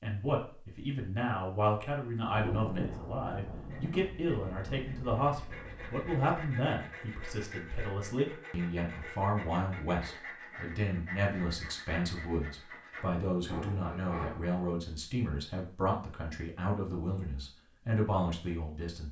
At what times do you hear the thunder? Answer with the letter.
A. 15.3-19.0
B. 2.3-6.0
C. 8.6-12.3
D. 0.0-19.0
B.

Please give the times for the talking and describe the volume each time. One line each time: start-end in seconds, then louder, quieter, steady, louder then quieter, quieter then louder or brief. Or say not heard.
0.0-19.0 steady.